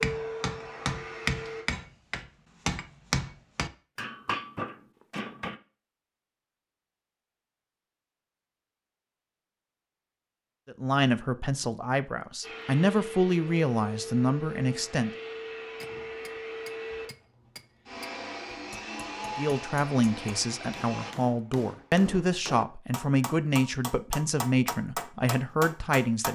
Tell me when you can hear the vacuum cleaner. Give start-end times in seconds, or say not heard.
0.0-1.6, 12.4-21.1.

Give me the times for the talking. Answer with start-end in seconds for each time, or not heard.
10.7-15.1, 19.4-26.3.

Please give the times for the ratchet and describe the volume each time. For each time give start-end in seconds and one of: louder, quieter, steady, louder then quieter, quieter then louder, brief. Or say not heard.
not heard.